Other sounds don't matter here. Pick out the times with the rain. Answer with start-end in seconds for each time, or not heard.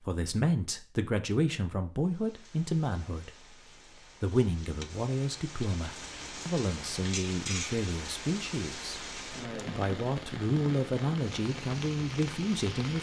2.0-12.9.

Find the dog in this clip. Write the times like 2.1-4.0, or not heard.
not heard.